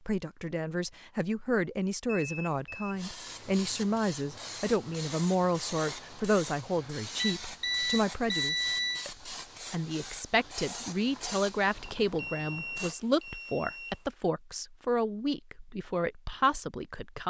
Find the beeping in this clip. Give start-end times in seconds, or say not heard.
2.0-3.0, 7.2-9.1, 12.1-14.1.